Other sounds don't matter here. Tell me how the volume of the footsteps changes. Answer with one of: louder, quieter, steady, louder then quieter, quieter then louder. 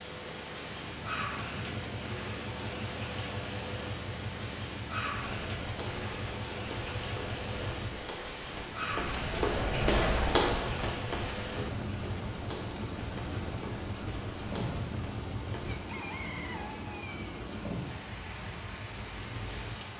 louder then quieter.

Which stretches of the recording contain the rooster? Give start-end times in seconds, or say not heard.
15.7-17.3.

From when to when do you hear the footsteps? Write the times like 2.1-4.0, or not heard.
5.1-15.8.